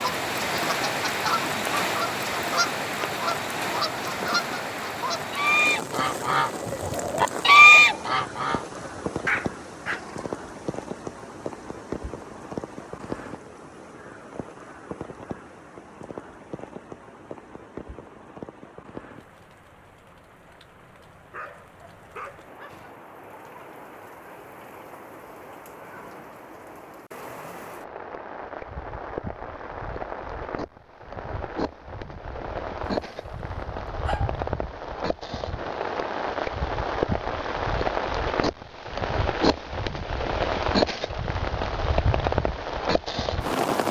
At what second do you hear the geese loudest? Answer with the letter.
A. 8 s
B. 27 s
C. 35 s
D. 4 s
A.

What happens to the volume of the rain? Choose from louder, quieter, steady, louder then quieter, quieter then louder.
quieter then louder.